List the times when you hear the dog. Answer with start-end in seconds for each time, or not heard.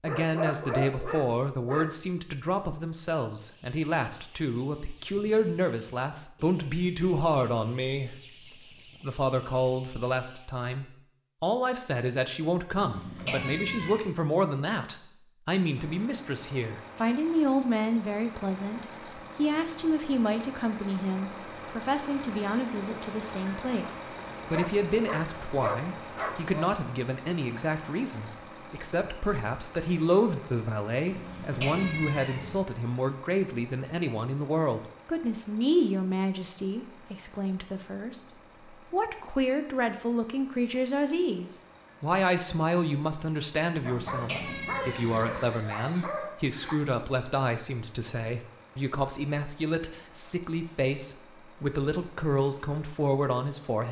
0.1-1.9, 24.4-26.7, 43.9-46.8.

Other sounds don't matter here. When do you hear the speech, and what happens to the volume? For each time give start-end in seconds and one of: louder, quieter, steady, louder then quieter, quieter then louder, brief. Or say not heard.
0.0-53.8 steady.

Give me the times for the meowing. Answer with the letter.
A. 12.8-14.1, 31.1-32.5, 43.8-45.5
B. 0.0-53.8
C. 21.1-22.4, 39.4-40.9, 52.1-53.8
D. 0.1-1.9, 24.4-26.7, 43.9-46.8
A.